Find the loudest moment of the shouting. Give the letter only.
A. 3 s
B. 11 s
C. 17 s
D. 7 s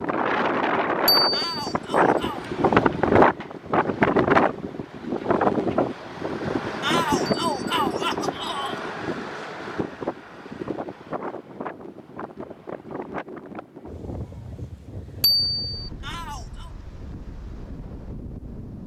D.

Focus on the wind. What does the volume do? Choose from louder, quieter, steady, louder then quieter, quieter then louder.
quieter.